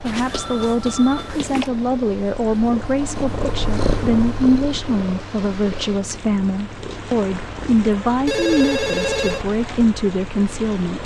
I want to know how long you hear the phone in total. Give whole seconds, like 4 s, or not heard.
3 s.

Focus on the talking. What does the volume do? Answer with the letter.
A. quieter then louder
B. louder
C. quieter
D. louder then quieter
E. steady
E.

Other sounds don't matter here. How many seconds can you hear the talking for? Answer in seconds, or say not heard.
11 s.